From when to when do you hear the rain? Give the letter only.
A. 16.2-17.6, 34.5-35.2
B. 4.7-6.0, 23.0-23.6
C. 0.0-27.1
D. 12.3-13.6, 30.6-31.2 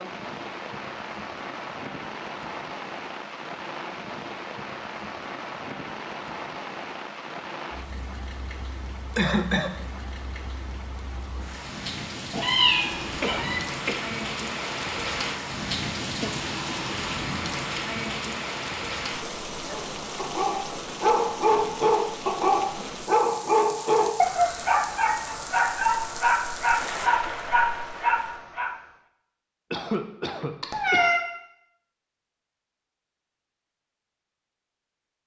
C.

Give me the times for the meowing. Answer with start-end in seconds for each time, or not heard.
12.3-13.6, 30.6-31.2.